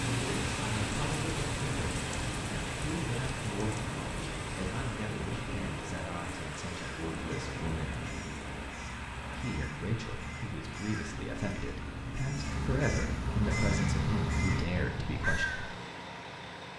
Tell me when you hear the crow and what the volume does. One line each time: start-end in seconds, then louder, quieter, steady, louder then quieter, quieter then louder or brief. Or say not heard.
6.7-15.7 louder.